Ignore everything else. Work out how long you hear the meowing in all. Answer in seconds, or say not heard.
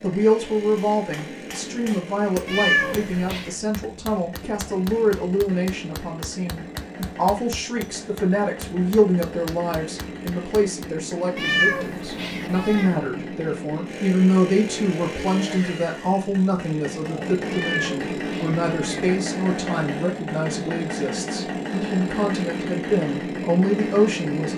4 s.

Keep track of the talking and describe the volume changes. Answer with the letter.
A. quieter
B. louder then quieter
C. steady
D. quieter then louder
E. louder
C.